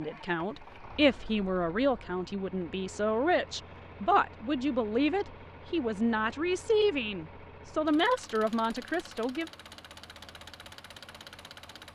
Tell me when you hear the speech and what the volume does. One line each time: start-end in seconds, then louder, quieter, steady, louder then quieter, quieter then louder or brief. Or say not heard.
0.0-9.5 steady.